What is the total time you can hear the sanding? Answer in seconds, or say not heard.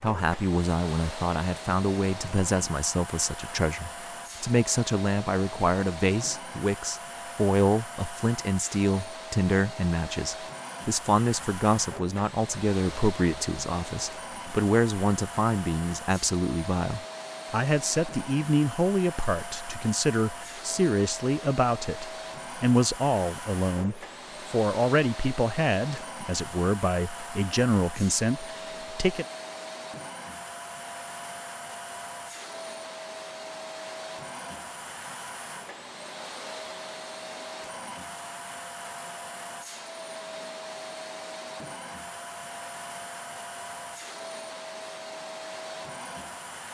not heard.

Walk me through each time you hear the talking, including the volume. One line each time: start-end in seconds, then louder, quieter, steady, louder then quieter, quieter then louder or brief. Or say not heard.
0.0-29.2 steady.